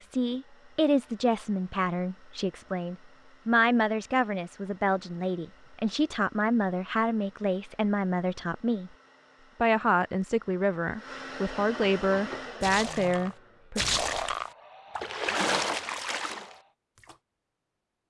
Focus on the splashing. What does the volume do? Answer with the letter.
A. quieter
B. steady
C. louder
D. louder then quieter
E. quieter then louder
D.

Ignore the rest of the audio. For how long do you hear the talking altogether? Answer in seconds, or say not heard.
13 s.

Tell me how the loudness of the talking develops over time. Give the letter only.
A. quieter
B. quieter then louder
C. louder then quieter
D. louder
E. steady
E.